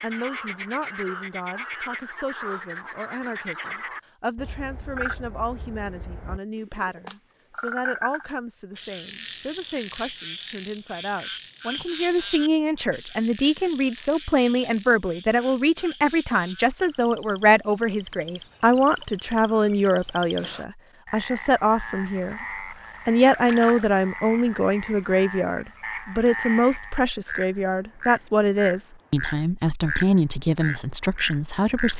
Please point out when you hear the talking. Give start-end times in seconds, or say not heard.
0.0-22.4, 23.1-31.9.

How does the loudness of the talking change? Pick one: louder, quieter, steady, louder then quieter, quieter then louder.
louder.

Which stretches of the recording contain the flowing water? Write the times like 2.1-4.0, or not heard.
not heard.